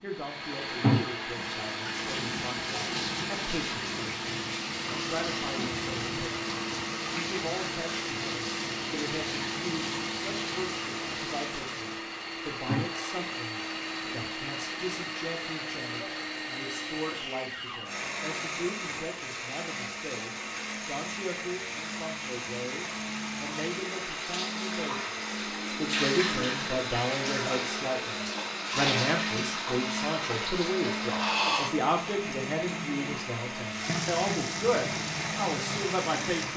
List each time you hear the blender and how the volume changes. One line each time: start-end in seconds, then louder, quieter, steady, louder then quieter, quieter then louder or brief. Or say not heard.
0.0-36.5 steady.